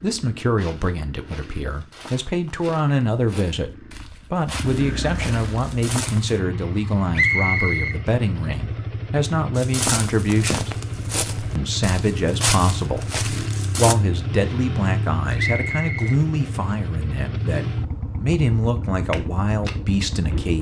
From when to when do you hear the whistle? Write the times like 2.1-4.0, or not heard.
7.2-8.0, 15.3-16.2.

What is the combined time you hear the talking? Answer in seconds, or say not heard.
19 s.